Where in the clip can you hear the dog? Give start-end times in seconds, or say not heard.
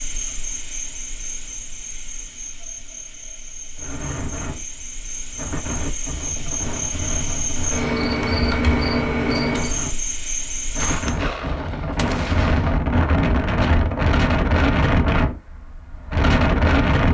not heard.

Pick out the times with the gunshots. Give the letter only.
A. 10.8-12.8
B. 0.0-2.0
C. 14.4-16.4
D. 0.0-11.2
A.